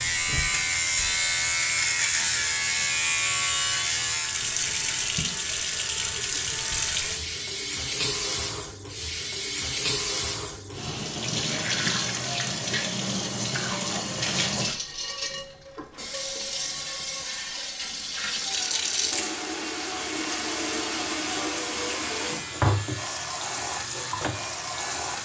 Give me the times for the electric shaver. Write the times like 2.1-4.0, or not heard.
0.0-7.2, 21.9-25.2.